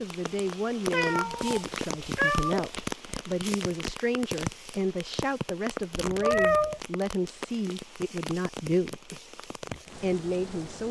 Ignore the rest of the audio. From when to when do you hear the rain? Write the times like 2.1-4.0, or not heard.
0.0-10.8.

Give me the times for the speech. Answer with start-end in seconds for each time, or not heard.
0.0-9.2, 9.9-10.8.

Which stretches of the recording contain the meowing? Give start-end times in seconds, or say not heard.
0.9-2.6, 6.0-6.8.